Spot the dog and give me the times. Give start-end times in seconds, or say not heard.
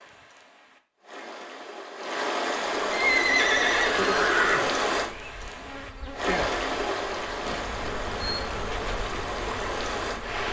not heard.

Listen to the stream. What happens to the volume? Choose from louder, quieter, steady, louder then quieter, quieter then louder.
louder then quieter.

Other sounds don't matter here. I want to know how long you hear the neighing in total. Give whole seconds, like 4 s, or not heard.
2 s.